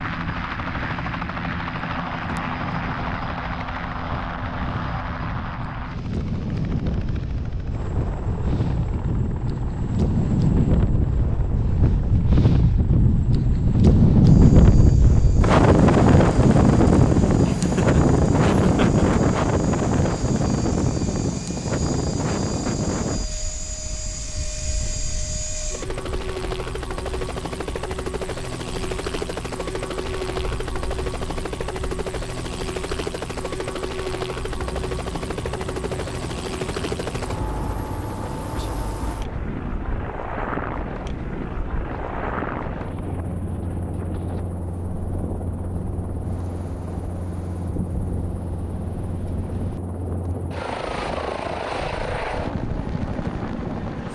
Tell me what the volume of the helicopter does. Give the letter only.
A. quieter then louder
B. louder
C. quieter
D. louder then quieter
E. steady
A.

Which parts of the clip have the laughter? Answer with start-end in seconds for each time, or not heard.
17.4-19.1.